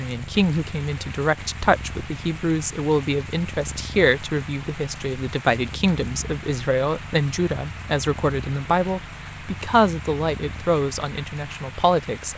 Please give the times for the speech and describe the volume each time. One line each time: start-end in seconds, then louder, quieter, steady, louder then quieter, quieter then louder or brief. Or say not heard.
0.0-12.3 steady.